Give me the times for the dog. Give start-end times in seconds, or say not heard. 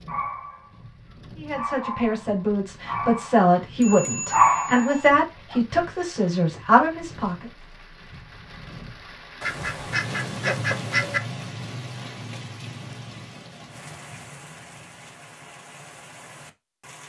0.1-0.7, 1.5-5.6.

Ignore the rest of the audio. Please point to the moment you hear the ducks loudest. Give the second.
11 s.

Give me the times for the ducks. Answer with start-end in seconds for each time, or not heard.
9.4-11.2.